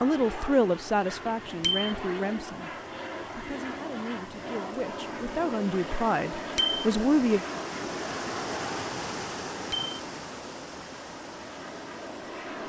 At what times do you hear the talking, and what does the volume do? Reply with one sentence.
You can hear the talking from 0.0 to 7.4 s, getting quieter then louder.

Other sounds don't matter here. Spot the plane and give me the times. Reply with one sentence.
The plane can be heard from 0.0 to 12.6 s.